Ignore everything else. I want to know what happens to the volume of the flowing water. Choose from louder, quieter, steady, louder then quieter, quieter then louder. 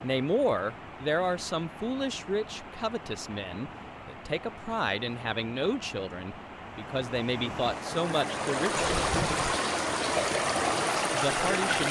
louder.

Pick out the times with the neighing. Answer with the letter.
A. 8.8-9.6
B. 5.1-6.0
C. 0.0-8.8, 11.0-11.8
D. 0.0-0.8
A.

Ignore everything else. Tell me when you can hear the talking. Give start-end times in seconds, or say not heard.
0.0-8.8, 11.0-11.8.